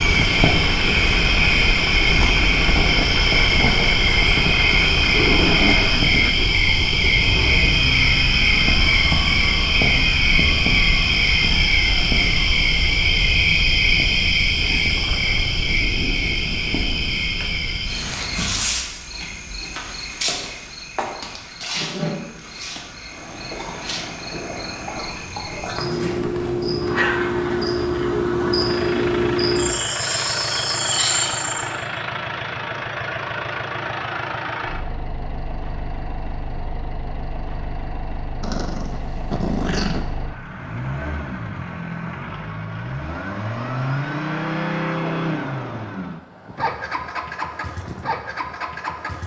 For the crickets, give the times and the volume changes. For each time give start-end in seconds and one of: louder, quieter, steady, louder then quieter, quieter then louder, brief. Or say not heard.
0.0-31.7 quieter then louder.